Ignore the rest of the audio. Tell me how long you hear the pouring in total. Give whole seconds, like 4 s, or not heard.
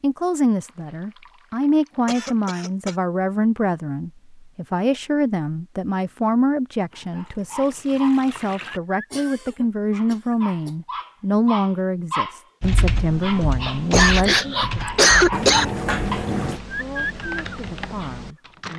5 s.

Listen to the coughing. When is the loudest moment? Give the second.
15 s.